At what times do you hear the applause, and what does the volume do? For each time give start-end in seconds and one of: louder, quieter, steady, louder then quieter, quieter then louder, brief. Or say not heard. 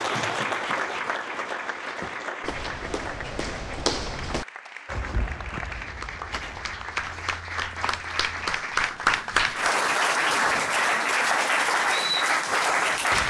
0.0-13.2 quieter then louder.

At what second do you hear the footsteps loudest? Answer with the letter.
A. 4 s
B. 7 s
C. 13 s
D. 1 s
A.